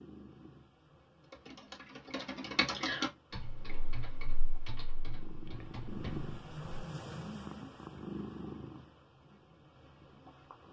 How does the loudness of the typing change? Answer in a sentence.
The loudness of the typing goes up, then down.